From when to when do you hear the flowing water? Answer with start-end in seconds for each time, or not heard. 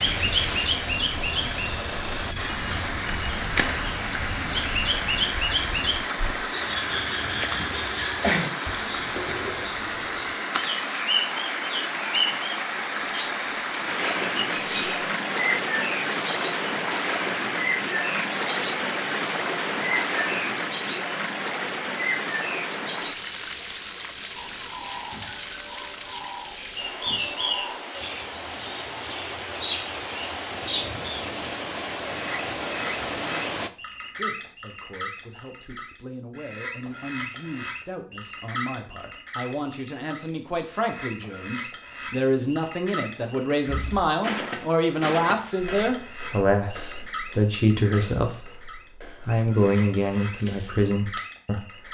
0.0-33.7.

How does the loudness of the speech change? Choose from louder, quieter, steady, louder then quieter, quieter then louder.
louder.